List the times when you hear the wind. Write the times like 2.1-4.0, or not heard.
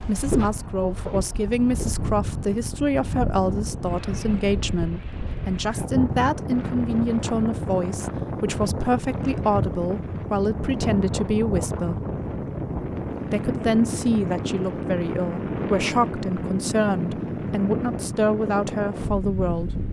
0.0-19.8.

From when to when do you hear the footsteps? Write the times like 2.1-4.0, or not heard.
0.1-2.0.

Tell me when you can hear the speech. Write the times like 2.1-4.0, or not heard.
0.0-12.1, 13.3-19.7.